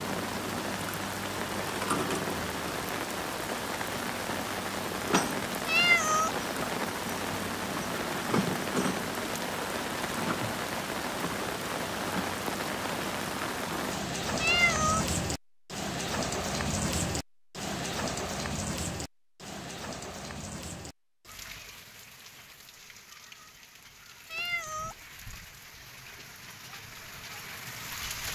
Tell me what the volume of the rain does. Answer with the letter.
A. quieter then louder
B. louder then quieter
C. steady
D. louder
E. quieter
E.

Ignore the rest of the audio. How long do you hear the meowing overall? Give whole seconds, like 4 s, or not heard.
2 s.